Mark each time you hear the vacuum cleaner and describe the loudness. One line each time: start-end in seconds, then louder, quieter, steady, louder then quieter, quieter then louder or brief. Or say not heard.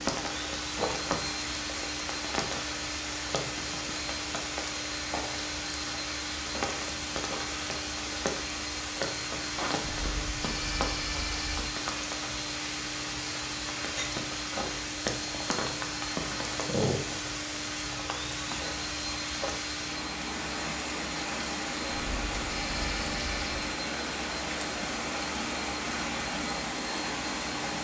0.2-27.7 steady.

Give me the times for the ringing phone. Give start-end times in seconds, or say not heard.
9.8-11.7, 21.9-23.8.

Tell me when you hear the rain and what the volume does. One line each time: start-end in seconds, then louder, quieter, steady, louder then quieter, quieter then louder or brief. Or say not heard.
0.0-27.7 steady.